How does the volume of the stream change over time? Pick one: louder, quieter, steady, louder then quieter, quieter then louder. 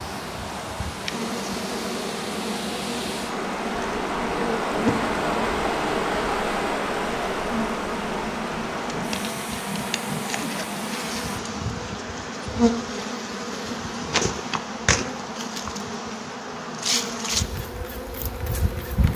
louder then quieter.